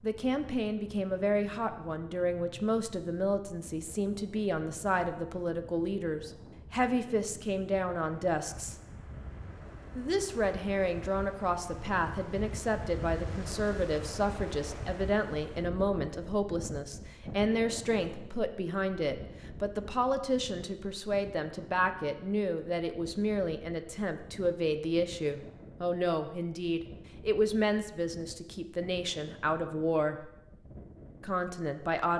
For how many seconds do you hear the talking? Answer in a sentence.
The talking can be heard for 30 seconds in total.